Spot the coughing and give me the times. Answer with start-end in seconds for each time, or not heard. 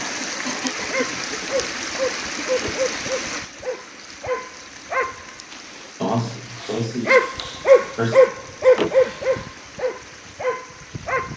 0.4-1.5, 6.0-8.2.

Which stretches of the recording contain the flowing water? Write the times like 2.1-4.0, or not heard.
0.0-11.3.